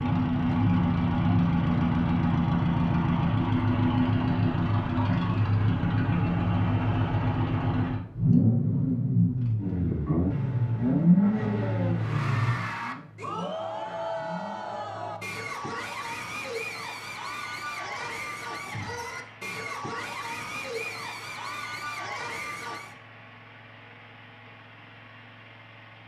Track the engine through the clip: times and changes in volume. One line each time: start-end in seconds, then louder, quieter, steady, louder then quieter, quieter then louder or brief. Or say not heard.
0.0-26.0 quieter.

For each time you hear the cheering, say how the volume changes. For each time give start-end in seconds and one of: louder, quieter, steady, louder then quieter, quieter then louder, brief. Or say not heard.
11.9-23.0 steady.